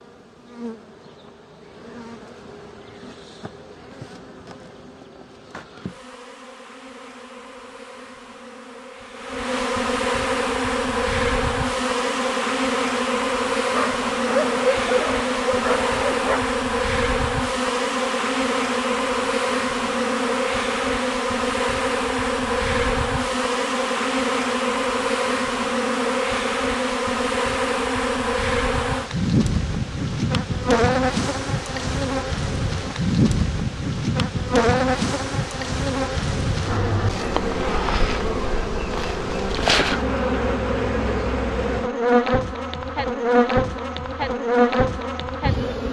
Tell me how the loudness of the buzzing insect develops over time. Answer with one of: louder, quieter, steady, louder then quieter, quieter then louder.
louder.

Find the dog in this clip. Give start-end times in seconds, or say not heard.
13.7-16.6.